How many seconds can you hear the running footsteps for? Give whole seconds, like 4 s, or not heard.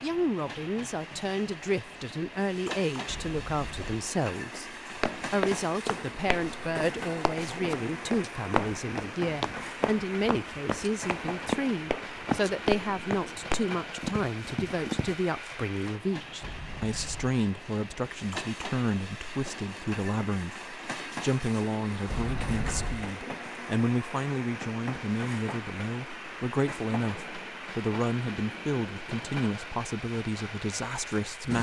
10 s.